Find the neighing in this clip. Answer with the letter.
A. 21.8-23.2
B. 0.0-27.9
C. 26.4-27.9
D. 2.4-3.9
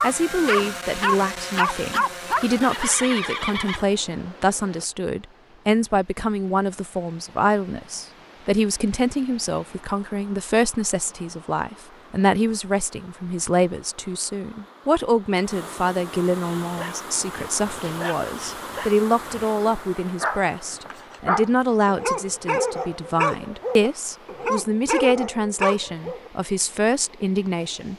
D.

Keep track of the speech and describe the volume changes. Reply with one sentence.
The volume of the speech stays about the same.